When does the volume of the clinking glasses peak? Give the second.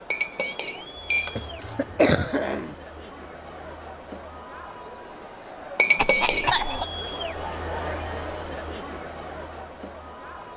6 s.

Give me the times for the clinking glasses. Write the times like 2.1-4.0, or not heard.
0.1-1.8, 5.8-6.6.